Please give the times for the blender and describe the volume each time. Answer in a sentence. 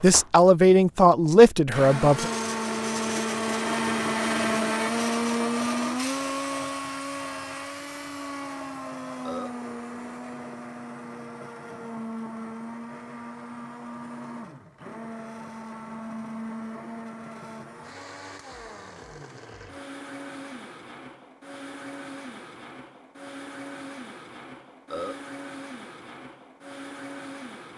You can hear the blender from 0.0 to 27.7 s, getting quieter.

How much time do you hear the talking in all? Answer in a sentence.
The talking can be heard for 2 seconds in total.